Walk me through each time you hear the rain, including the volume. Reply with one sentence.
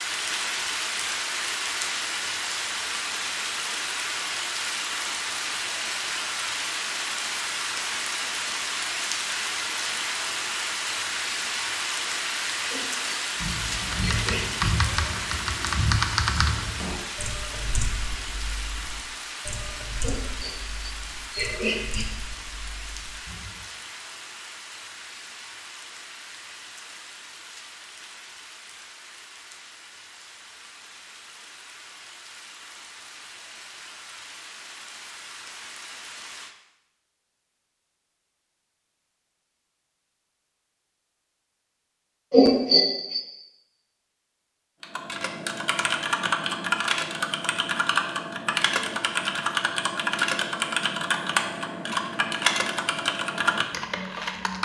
The rain can be heard from 0.0 to 36.5 s, getting quieter.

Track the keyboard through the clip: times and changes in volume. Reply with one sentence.
You can hear the keyboard from 13.4 to 23.7 s, getting quieter; and from 44.8 to 54.6 s, at a steady volume.